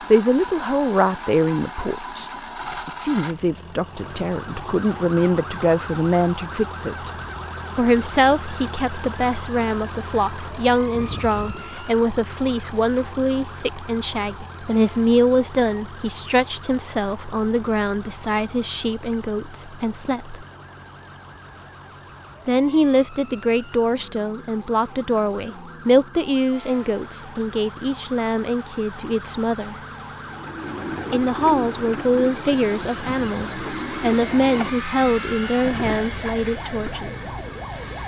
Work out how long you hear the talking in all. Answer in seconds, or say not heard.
33 s.